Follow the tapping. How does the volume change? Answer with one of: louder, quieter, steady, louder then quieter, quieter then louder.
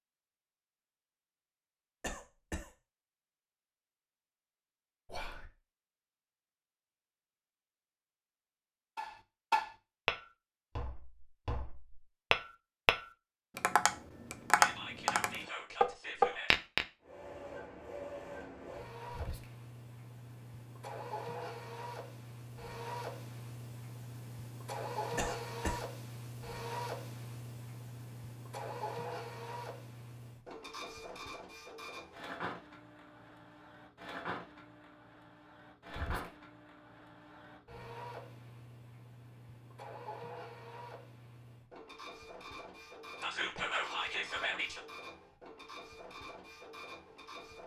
quieter then louder.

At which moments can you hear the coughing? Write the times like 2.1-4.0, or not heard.
2.0-2.7, 25.1-25.9.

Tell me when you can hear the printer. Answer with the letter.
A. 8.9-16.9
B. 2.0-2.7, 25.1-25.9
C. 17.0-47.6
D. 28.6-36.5
C.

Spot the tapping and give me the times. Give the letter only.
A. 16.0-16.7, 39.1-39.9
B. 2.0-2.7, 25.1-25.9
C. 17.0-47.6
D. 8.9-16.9
D.